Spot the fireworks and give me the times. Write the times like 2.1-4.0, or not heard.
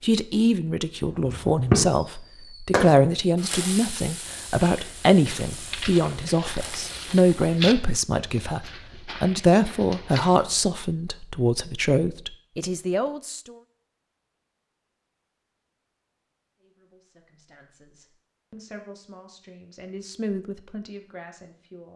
1.2-7.7.